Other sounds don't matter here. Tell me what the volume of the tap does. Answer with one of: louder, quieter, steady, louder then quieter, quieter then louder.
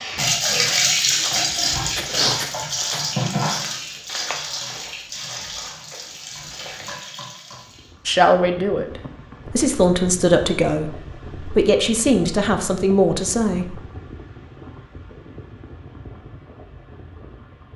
quieter.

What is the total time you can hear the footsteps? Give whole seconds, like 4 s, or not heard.
7 s.